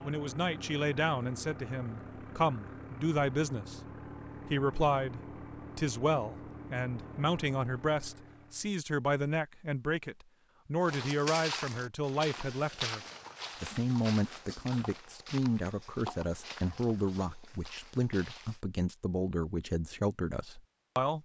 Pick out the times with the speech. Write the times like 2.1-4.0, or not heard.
0.0-3.8, 4.5-13.0, 13.6-21.2.